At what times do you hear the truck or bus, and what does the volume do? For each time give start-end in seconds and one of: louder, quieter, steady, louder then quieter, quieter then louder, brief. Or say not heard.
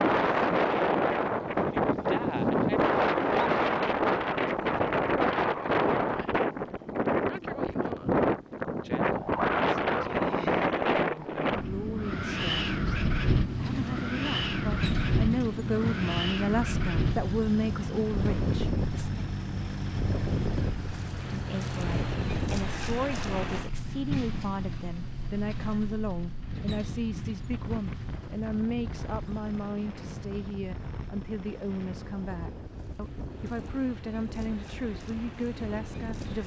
13.2-36.4 quieter.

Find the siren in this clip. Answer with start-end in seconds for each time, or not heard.
not heard.